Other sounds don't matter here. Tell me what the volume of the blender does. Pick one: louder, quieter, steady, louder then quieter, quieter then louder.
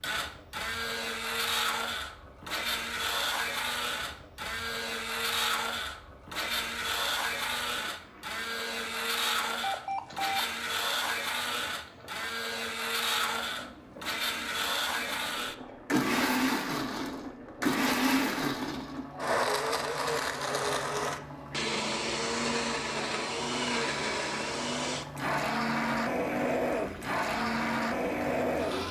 steady.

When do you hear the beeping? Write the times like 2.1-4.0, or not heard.
9.6-10.4.